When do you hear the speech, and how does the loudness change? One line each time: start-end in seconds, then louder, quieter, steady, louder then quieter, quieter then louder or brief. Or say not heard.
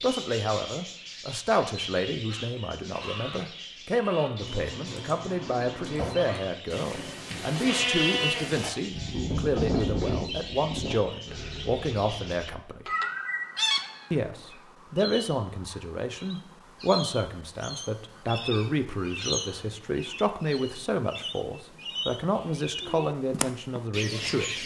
0.0-12.9 steady
14.1-24.6 steady.